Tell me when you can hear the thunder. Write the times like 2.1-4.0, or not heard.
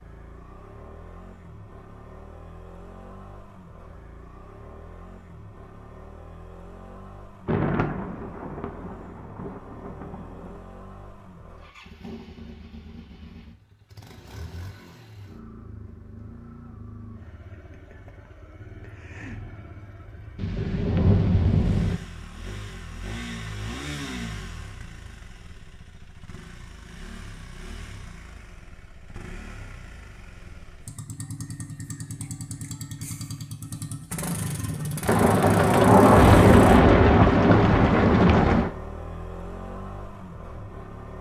7.5-10.6, 20.4-22.0, 35.0-38.7.